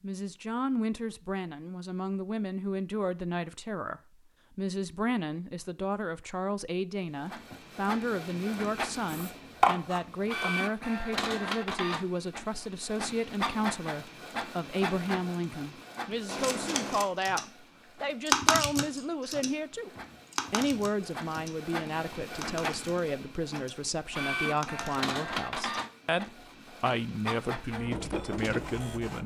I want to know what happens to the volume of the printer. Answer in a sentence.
The loudness of the printer goes down, then up.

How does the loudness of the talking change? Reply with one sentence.
The loudness of the talking stays about the same.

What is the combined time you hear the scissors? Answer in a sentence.
You can hear the scissors for 2 seconds altogether.